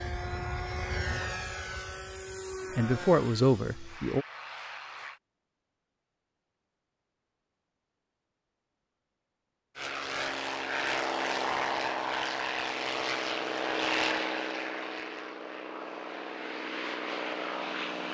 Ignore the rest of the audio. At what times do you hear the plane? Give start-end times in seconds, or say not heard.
0.0-5.2, 9.8-18.0.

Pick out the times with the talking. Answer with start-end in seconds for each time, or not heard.
2.8-4.2.